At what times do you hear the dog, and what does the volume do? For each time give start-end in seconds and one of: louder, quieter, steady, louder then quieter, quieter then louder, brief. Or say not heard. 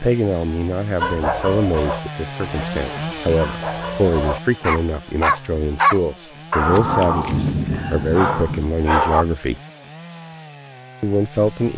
0.9-9.2 louder then quieter.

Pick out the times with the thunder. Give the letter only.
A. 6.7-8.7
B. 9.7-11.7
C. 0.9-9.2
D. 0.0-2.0
A.